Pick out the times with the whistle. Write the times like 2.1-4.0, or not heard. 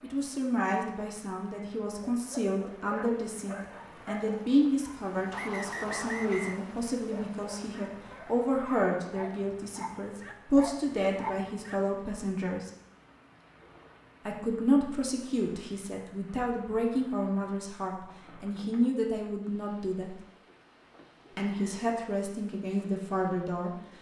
5.3-6.6, 21.4-21.9.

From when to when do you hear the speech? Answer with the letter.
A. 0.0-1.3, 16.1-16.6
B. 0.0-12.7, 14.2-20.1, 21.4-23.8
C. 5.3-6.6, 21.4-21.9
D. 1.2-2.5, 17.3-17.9
B.